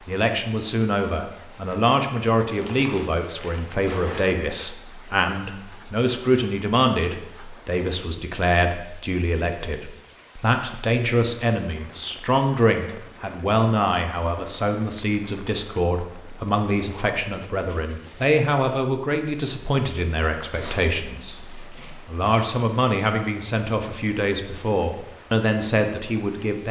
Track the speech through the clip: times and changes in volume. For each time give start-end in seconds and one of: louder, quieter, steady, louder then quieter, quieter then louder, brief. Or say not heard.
0.1-26.6 steady.